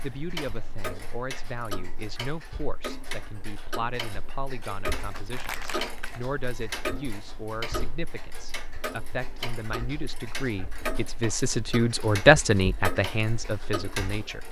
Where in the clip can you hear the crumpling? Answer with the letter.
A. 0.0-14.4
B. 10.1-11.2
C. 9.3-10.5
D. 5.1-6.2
D.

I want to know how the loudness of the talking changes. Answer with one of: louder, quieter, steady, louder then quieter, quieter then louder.
louder.